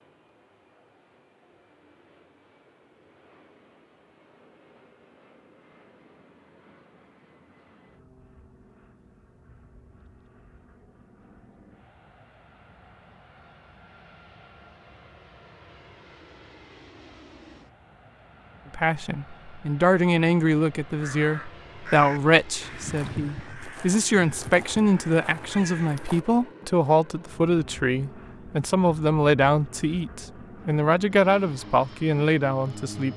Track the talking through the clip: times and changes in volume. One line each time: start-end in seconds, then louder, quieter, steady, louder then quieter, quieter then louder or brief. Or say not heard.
18.7-33.1 steady.